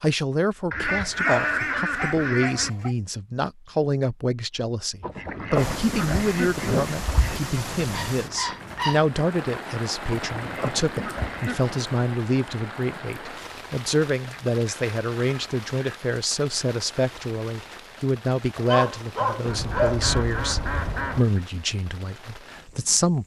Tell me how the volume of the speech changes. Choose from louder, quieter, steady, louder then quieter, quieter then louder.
steady.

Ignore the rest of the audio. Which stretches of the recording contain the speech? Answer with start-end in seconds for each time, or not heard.
0.0-23.2.